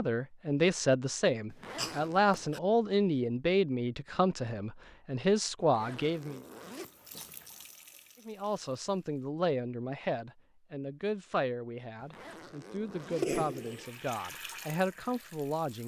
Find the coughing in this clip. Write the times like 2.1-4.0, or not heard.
1.8-2.6, 13.0-13.9.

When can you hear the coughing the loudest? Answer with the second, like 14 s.
13 s.